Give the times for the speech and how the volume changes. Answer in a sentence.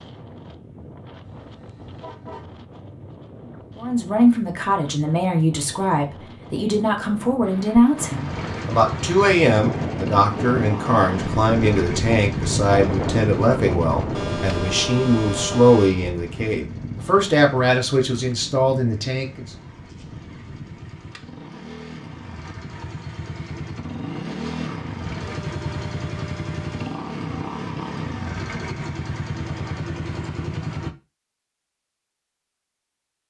The speech can be heard from 3.8 to 19.4 s, at a steady volume.